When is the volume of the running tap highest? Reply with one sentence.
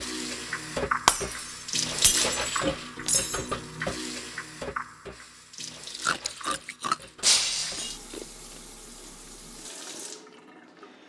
The loudest moment of the running tap is at 2 seconds.